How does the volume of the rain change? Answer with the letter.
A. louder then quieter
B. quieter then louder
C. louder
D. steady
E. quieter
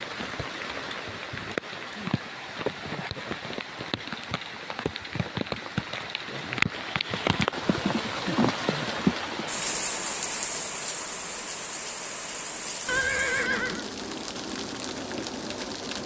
A.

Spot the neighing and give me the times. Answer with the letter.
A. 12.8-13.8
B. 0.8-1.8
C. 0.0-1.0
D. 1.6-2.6
A.